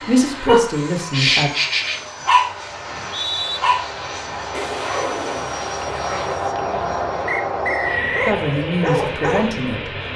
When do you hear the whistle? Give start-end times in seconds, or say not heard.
2.9-3.6, 7.2-8.4.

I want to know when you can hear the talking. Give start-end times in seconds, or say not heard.
0.1-1.5, 8.2-9.9.